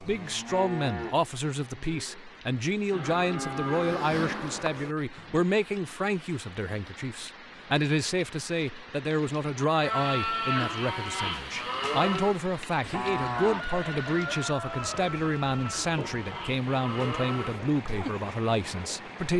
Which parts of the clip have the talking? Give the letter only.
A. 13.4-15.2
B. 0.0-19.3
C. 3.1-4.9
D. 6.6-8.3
B.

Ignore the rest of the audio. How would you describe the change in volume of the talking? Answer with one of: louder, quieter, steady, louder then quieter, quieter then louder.
steady.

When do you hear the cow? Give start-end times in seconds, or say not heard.
0.0-5.5, 9.6-18.3.